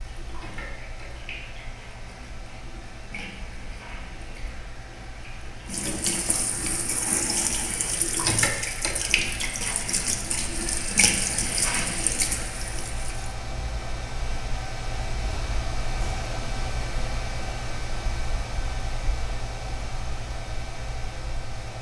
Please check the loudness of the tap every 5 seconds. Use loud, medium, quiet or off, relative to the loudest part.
quiet, loud, loud, off, off.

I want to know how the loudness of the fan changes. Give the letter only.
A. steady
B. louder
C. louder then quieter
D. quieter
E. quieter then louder
B.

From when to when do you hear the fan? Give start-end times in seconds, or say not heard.
0.0-21.7.